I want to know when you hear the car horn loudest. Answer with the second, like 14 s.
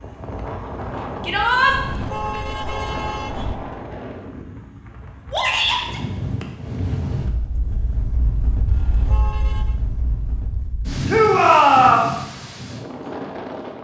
2 s.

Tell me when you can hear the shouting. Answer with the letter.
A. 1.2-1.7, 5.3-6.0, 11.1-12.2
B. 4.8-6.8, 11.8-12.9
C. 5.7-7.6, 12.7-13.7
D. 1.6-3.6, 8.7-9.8
A.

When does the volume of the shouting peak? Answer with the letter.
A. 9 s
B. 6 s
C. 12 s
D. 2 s
C.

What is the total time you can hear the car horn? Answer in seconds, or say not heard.
3 s.